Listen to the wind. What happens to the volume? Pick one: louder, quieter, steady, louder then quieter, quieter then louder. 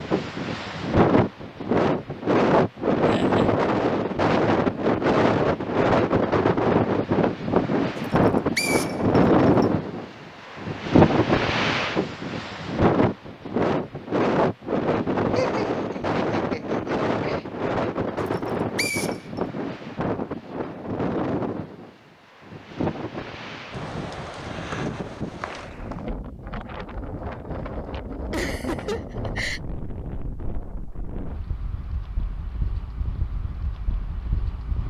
quieter.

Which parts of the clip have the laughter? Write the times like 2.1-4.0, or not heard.
3.0-3.5, 15.3-17.4, 28.3-29.6.